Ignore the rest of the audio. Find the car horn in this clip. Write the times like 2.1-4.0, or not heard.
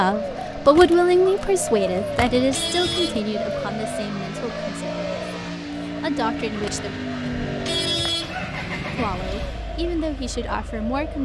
2.2-3.3, 7.5-9.2.